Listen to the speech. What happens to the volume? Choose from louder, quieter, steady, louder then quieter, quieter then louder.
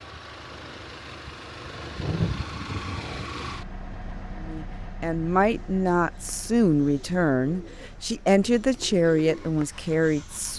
steady.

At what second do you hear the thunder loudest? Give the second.
2 s.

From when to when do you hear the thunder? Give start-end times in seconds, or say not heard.
0.4-3.5.